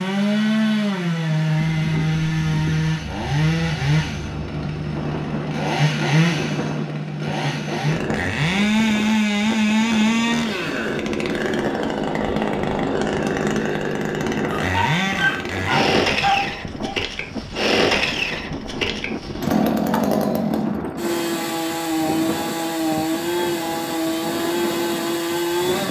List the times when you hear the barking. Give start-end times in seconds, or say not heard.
14.6-17.1.